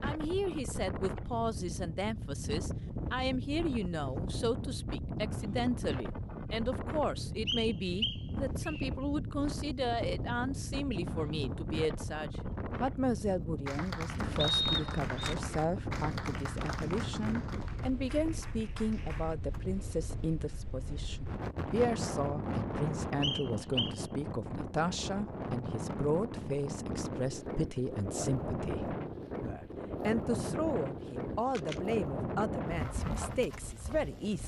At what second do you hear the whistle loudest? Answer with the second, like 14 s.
15 s.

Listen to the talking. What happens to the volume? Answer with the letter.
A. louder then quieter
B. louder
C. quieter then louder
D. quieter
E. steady
E.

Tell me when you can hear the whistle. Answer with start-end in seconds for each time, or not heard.
7.5-8.8, 14.3-15.3, 23.2-23.9.